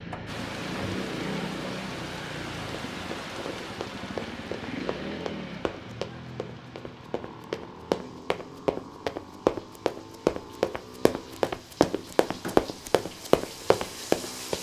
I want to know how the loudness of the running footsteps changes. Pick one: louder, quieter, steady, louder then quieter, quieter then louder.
louder.